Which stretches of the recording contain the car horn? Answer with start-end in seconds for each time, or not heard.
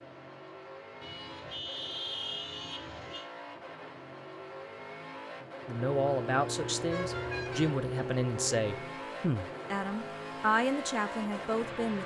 1.0-3.2, 6.8-7.7.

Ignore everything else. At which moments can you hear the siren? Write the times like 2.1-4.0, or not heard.
5.8-9.0.